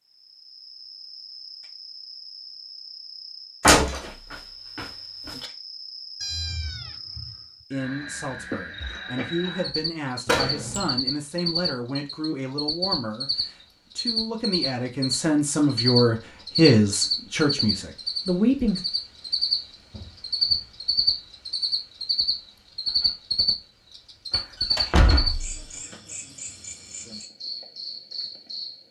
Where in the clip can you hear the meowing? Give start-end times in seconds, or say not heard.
6.2-7.4.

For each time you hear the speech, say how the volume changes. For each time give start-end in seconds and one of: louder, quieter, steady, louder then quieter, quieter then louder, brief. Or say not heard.
7.7-18.8 louder.